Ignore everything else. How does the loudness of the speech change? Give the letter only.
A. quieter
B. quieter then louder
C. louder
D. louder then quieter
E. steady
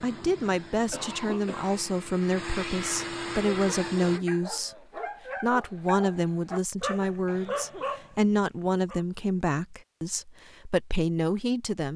E.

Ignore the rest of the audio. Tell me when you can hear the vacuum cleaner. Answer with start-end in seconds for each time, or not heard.
0.0-4.2.